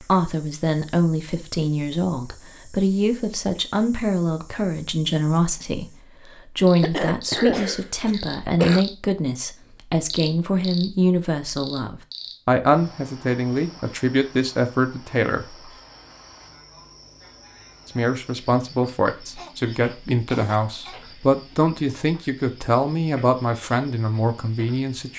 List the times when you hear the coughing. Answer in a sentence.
You can hear the coughing from 6.8 to 8.8 s and from 19.4 to 21.0 s.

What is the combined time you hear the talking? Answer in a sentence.
The talking can be heard for 23 seconds in total.